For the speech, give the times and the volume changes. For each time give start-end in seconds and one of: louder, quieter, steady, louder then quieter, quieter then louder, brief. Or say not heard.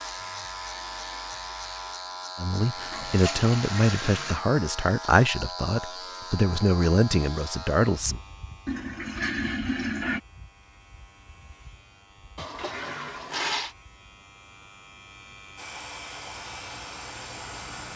2.4-8.2 steady.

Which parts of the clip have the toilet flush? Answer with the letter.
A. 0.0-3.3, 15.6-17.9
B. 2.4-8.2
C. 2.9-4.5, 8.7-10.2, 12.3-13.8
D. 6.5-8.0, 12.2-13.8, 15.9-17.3
C.